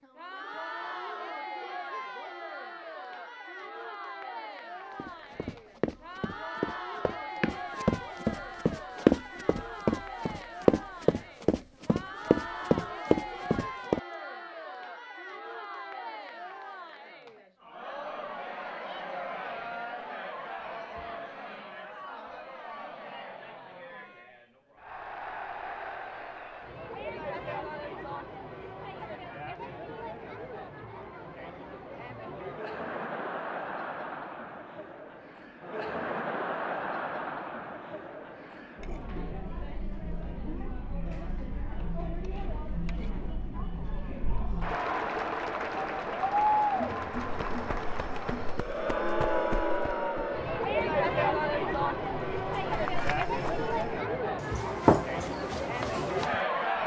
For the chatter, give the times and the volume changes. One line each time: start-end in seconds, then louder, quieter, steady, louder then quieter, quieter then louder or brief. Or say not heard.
0.0-56.8 louder.